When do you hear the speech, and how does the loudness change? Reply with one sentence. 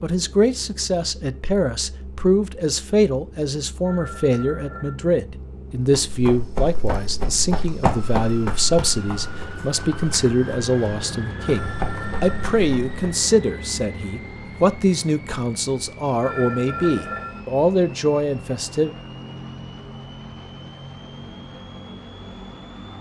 You can hear the speech from 0.0 to 18.9 s, at a steady volume.